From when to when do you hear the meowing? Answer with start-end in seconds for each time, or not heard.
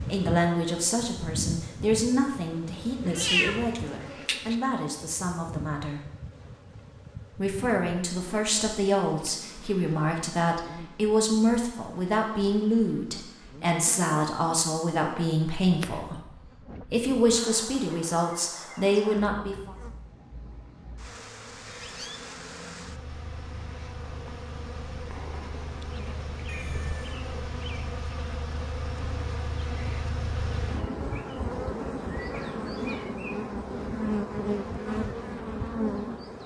3.1-4.5, 15.7-16.1, 26.4-27.2.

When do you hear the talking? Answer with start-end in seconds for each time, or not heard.
0.0-6.1, 7.3-16.2, 16.9-19.8.